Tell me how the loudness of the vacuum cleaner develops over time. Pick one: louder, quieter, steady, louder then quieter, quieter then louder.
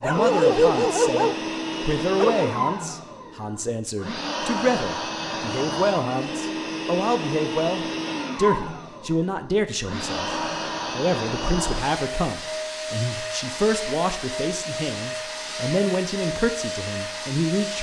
steady.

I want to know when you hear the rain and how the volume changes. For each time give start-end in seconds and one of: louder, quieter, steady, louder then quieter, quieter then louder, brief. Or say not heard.
not heard.